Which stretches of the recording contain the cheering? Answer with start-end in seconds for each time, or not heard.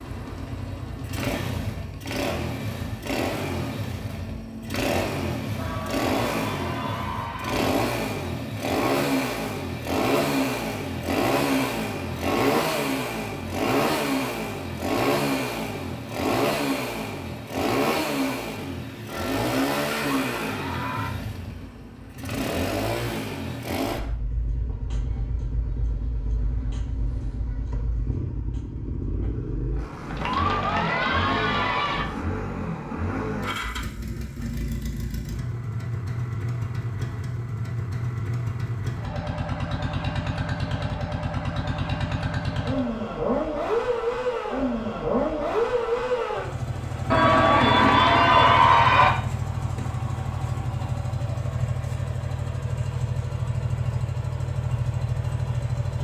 5.5-7.6, 19.1-21.1, 30.1-32.0, 47.1-49.1.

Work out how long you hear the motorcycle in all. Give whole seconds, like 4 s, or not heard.
56 s.